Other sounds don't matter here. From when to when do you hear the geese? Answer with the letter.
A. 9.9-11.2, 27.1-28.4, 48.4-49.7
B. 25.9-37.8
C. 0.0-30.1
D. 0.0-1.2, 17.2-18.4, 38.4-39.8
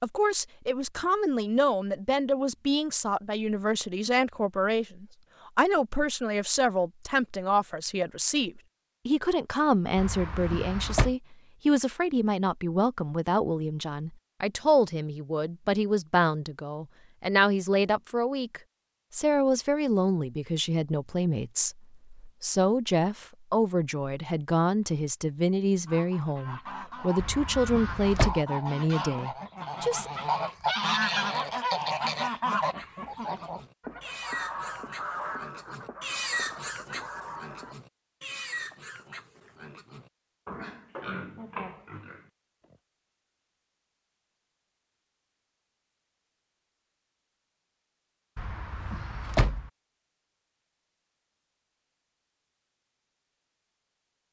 B.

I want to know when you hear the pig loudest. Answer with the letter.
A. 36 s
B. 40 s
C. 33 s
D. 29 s
A.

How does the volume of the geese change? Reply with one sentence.
The loudness of the geese goes up, then down.